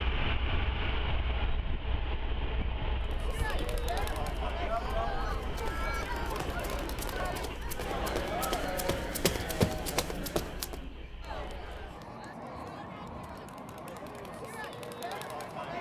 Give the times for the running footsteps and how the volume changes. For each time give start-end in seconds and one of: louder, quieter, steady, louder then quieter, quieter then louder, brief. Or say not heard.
5.2-10.8 louder.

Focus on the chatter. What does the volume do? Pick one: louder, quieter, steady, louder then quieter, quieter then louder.
quieter.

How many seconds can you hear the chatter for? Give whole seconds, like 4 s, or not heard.
13 s.